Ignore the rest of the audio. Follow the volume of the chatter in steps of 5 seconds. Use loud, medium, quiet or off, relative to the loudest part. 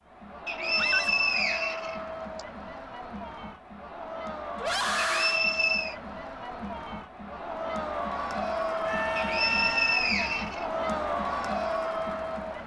medium, loud, loud.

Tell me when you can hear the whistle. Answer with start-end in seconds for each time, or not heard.
0.5-2.4, 5.0-6.0, 9.2-10.7.